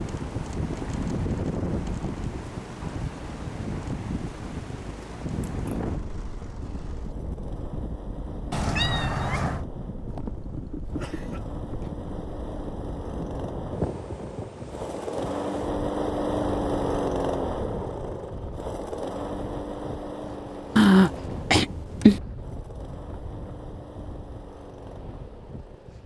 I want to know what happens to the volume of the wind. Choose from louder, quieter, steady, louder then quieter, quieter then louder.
quieter.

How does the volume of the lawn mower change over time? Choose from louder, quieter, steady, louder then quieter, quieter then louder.
louder then quieter.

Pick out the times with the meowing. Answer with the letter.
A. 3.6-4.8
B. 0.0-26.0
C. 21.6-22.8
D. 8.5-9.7
D.